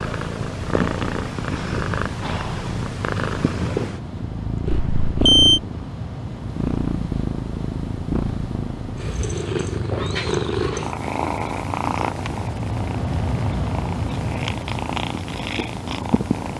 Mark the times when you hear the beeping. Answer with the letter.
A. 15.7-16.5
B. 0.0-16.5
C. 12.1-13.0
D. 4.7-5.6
D.